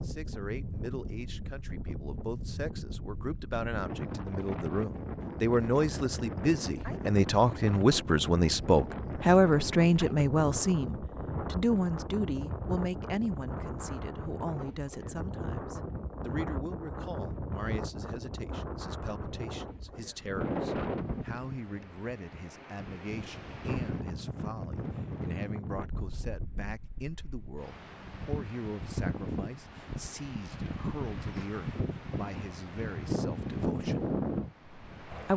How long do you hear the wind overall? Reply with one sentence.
The wind can be heard for 35 seconds in total.